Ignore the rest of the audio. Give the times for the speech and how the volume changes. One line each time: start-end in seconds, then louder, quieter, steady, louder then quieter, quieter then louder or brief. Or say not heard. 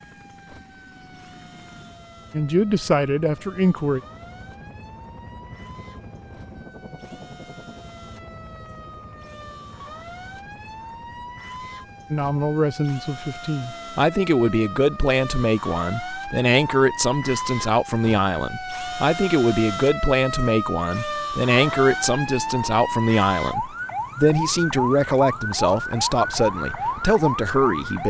2.3-4.0 brief
12.1-28.0 steady.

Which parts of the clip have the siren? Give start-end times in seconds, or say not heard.
0.0-28.0.